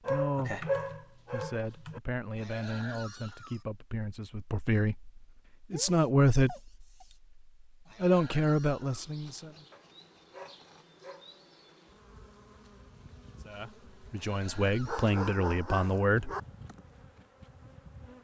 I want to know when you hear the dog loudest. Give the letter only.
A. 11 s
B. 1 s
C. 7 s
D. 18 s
B.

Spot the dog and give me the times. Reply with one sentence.
You can hear the dog from 0.1 to 2.0 s, from 5.7 to 7.2 s, from 9.7 to 11.3 s and from 14.8 to 16.4 s.